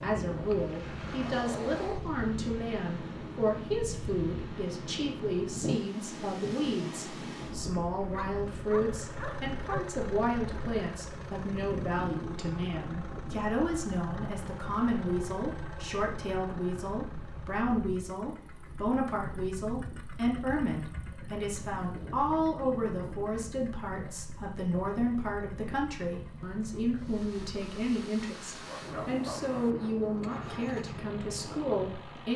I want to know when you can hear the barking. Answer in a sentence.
The barking can be heard from 8.0 to 9.9 s and from 28.6 to 29.8 s.